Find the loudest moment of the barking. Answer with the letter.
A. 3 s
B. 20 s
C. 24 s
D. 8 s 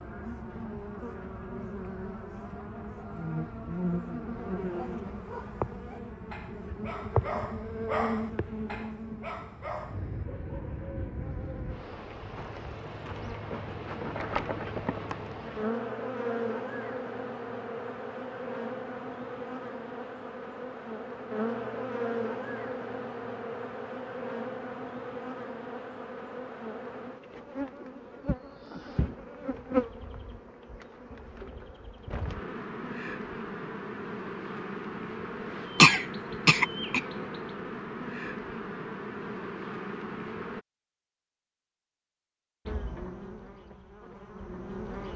D.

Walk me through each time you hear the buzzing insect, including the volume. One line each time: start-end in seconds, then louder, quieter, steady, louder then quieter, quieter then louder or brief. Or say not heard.
0.0-40.6 steady
42.6-45.1 brief.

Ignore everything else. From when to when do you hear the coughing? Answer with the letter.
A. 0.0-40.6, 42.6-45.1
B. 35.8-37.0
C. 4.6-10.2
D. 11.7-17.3
B.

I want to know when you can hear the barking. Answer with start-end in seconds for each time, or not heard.
4.6-10.2.